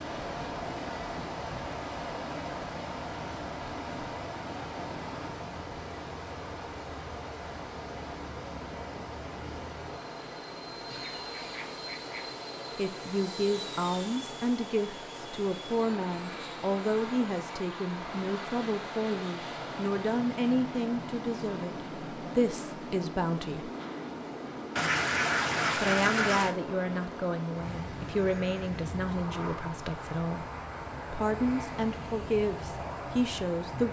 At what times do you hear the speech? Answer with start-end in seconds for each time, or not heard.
12.8-23.7, 25.8-30.4, 31.1-33.8.